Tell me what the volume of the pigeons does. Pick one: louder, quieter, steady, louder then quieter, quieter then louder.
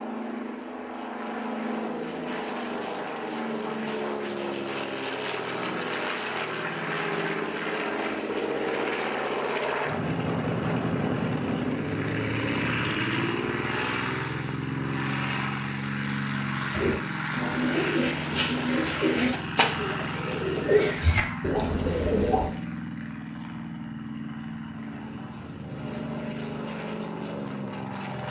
steady.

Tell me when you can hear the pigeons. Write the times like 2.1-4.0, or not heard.
16.7-22.6.